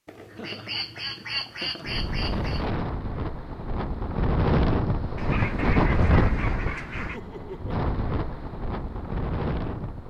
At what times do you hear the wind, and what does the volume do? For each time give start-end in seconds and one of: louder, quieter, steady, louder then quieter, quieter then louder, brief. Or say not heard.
1.8-10.0 louder then quieter.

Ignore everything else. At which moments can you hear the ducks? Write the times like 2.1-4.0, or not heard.
0.1-2.6, 5.2-7.2.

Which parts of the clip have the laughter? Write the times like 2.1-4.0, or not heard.
0.3-2.0, 7.0-7.8.